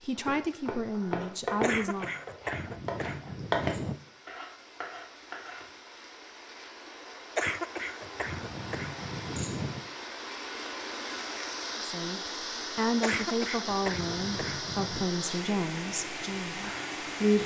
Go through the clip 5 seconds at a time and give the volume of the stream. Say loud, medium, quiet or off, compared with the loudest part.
quiet, medium, loud, loud.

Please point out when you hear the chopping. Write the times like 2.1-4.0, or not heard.
0.1-5.7.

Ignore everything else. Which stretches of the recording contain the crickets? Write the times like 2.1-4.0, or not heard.
not heard.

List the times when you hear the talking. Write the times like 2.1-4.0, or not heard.
0.0-2.1, 11.8-17.4.